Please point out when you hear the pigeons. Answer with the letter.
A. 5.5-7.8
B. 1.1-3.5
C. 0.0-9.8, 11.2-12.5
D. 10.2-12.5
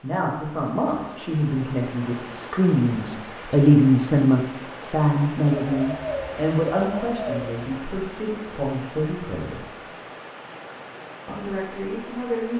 A.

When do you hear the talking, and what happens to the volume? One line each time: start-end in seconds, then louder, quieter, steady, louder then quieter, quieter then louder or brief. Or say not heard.
0.0-9.8 louder then quieter
11.2-12.5 brief.